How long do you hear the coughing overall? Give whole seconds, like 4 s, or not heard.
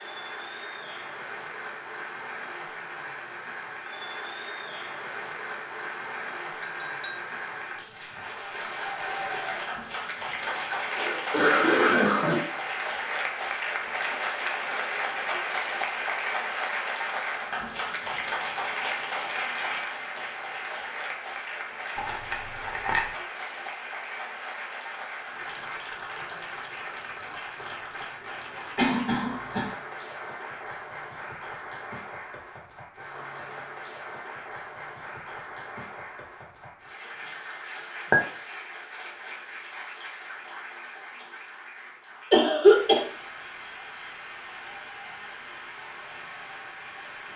4 s.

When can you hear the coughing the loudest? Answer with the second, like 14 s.
43 s.